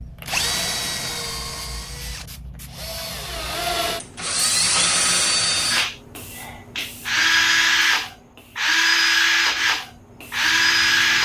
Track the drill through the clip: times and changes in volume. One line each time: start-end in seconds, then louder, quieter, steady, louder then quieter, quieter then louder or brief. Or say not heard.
0.2-11.1 louder.